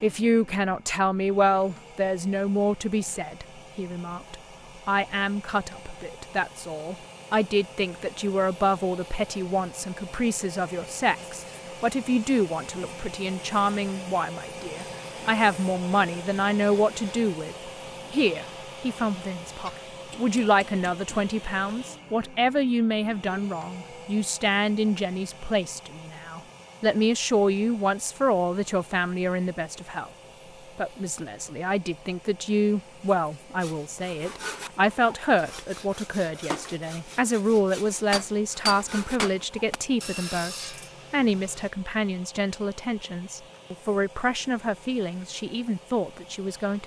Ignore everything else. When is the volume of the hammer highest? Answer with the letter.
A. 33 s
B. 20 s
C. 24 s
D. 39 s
D.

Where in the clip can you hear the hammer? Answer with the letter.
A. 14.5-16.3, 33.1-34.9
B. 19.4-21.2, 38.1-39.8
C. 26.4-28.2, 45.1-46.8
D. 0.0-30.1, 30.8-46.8
B.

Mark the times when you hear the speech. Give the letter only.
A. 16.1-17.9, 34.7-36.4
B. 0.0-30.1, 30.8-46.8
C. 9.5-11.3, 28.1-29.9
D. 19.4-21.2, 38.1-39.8
B.